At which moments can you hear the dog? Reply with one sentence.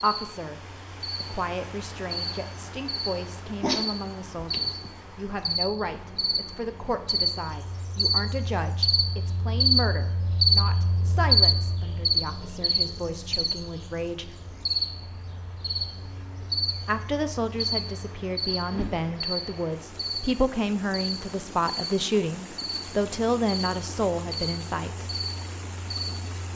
You can hear the dog from 3.6 to 4.9 s.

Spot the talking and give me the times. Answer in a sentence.
The talking can be heard from 0.0 to 14.3 s and from 16.9 to 25.1 s.